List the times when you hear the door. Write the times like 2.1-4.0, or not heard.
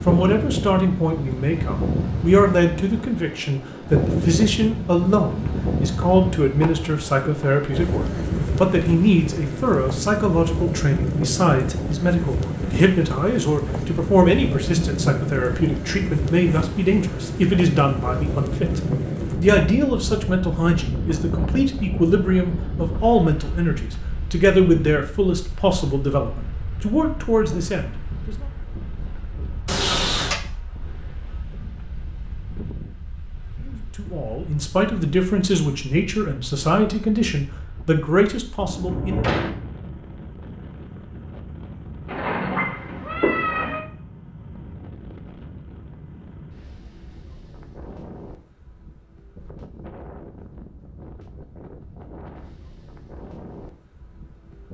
6.0-7.5, 29.6-30.4, 38.5-39.6.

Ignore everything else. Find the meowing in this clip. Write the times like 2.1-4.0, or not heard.
42.0-43.8.